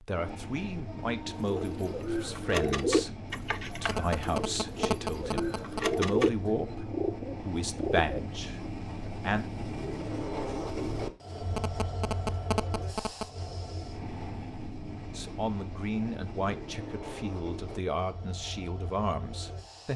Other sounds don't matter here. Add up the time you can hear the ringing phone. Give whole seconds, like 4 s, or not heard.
4 s.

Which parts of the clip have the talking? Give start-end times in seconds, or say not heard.
0.0-9.4, 15.2-19.9.